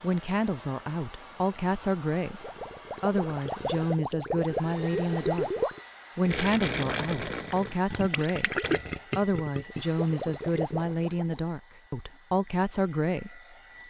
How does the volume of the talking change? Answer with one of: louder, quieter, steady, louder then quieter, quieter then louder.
steady.